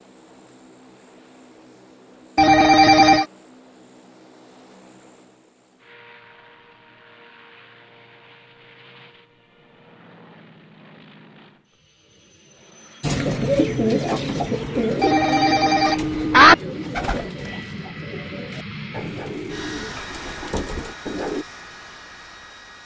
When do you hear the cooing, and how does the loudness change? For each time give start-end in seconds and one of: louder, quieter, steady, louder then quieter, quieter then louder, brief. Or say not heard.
13.0-21.4 quieter.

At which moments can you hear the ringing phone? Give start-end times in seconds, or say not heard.
2.4-3.2, 15.0-16.6.